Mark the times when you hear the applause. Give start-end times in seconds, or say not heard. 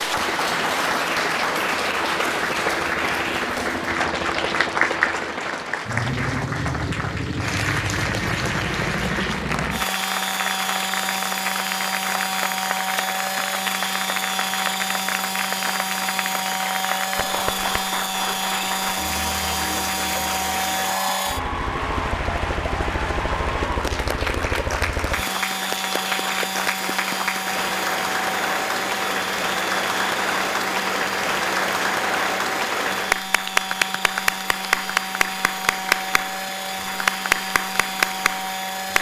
0.0-38.9.